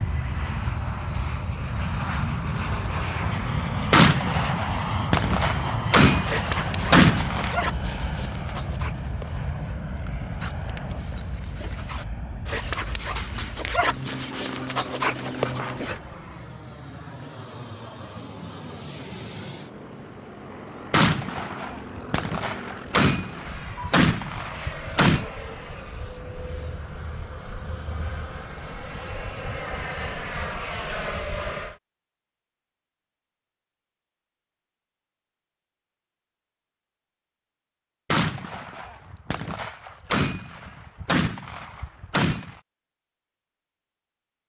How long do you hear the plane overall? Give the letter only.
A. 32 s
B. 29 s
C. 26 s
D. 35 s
A.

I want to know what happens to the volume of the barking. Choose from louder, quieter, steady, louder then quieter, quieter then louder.
quieter then louder.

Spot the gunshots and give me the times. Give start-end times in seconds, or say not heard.
3.9-7.5, 20.9-25.2, 38.1-42.6.